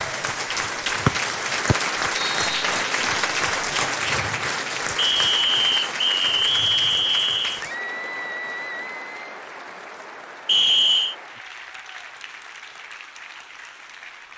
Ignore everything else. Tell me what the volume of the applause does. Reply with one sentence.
The loudness of the applause goes down.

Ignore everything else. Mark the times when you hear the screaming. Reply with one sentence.
You can hear the screaming from 7.5 to 9.2 s.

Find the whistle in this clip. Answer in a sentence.
The whistle can be heard from 1.1 to 2.6 s, from 5.0 to 7.6 s and from 10.4 to 11.2 s.